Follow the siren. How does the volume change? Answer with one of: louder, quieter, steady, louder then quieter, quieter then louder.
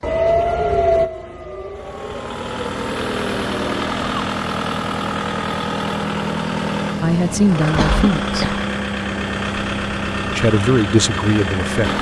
quieter.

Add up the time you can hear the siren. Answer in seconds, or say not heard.
4 s.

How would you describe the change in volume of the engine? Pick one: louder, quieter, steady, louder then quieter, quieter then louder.
steady.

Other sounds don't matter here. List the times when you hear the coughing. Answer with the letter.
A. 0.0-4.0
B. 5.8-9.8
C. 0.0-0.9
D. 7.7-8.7
D.